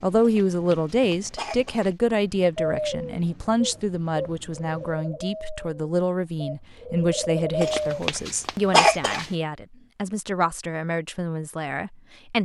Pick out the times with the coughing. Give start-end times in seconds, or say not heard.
0.2-1.9, 7.6-9.3.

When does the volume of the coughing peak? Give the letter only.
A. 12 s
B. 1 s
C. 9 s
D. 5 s
C.